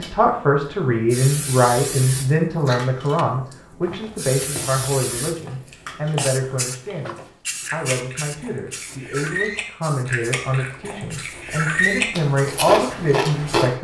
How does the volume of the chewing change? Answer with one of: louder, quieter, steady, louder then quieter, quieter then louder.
louder.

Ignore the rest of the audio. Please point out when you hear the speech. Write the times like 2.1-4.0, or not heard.
0.0-13.8.